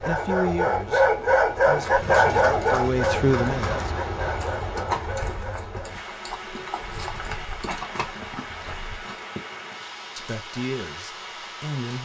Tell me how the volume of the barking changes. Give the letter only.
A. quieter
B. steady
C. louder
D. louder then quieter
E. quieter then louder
A.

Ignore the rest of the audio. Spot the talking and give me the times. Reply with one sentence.
You can hear the talking from 0.1 to 3.9 s and from 10.2 to 12.0 s.